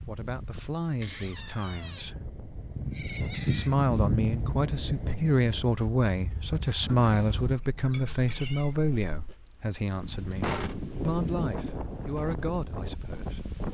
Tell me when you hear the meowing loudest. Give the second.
4 s.